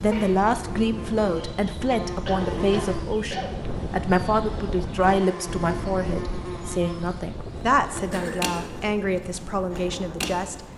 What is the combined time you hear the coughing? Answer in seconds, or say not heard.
2 s.